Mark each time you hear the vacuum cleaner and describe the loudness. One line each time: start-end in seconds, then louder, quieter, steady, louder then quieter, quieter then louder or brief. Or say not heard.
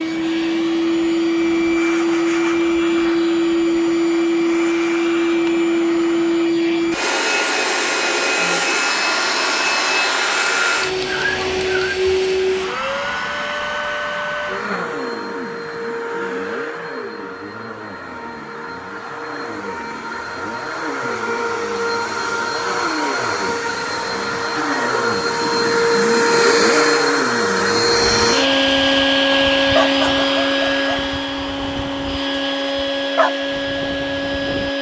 0.0-34.7 quieter then louder.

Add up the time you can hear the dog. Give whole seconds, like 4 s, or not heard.
7 s.